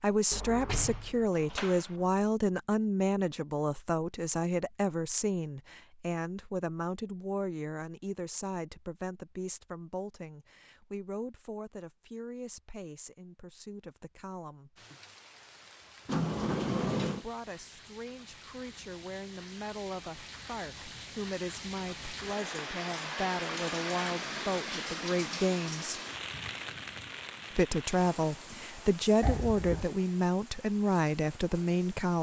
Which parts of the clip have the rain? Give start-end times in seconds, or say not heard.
14.8-32.1.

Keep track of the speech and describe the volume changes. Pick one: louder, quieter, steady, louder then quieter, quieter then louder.
quieter then louder.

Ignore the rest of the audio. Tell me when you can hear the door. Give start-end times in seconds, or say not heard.
0.3-2.0, 16.1-17.2, 29.2-29.9.